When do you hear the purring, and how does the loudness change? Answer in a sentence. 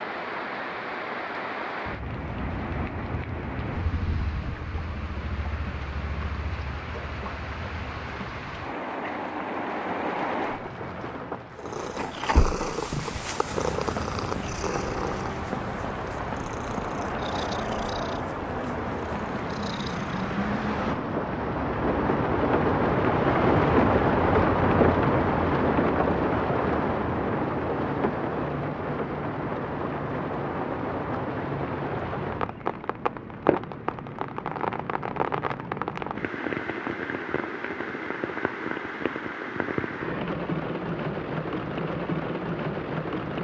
The purring can be heard from 11.5 to 20.2 s, getting quieter.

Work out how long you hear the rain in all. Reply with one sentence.
You can hear the rain for 43 seconds altogether.